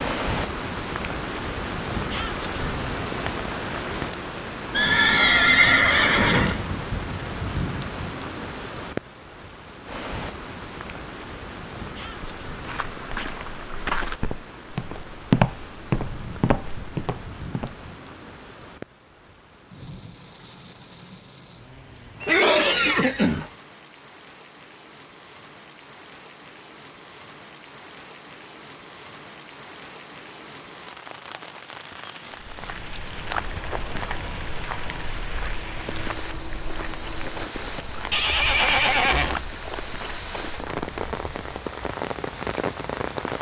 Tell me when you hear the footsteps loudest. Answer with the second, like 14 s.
15 s.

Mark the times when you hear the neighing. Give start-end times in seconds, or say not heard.
4.7-6.6, 22.2-23.5, 38.1-39.5.